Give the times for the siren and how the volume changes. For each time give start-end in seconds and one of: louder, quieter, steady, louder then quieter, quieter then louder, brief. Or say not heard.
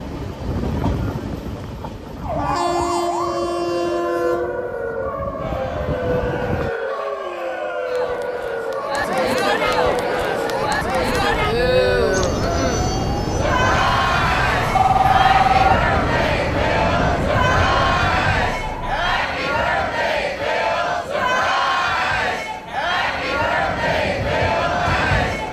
2.2-19.2 steady.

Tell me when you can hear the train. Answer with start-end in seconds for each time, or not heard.
0.0-6.7, 12.1-25.4.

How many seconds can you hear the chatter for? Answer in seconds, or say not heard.
20 s.